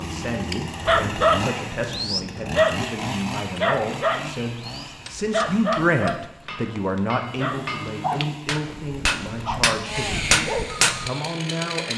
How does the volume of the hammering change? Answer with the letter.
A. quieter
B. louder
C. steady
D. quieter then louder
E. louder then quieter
B.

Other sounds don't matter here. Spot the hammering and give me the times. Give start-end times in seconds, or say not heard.
4.8-11.1.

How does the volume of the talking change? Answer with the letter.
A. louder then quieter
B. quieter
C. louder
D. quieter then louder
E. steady
A.